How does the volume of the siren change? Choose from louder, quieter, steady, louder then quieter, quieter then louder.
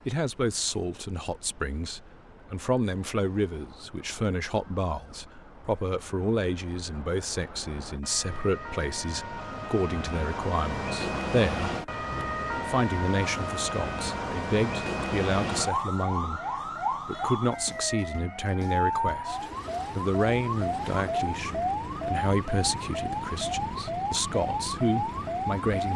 louder.